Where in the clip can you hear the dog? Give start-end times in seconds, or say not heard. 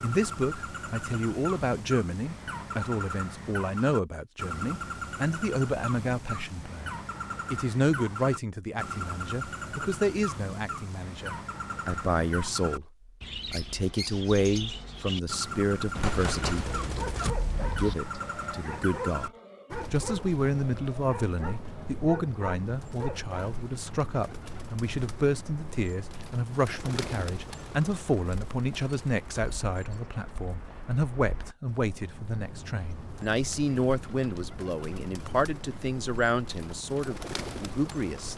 16.8-23.4.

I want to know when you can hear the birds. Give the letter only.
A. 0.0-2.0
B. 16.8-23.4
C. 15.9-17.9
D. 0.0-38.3
D.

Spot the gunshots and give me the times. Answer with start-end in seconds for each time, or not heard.
15.9-17.9.